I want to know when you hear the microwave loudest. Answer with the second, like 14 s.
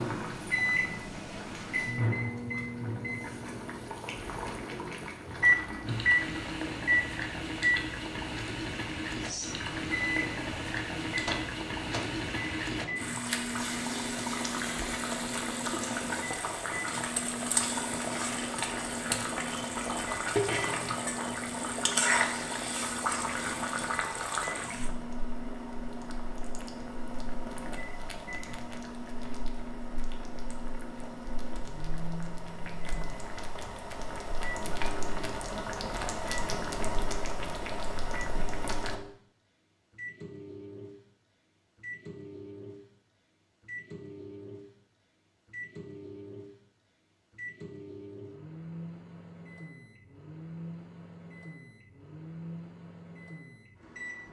6 s.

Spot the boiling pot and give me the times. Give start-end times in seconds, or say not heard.
0.0-39.0.